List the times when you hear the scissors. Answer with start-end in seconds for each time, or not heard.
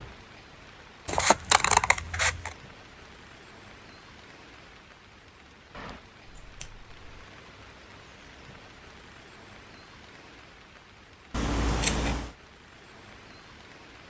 1.1-2.5, 6.4-7.2, 11.3-12.3.